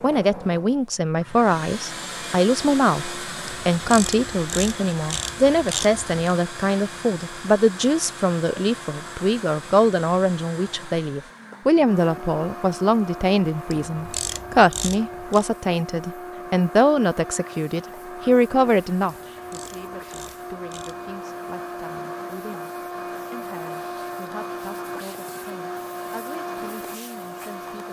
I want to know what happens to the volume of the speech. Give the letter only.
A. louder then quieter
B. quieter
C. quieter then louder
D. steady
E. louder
B.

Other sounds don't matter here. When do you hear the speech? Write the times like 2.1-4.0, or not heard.
0.0-27.8.